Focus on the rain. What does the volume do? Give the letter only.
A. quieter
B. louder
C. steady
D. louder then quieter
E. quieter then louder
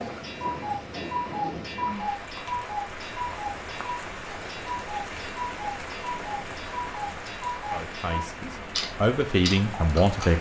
C.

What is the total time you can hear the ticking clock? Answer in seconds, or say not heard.
10 s.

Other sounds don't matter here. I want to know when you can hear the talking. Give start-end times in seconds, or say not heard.
7.7-10.3.